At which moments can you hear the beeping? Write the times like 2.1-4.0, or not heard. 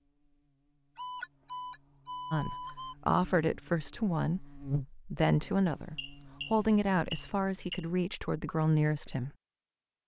0.9-3.0, 6.0-7.8.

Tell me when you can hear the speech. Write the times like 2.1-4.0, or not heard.
2.3-9.3.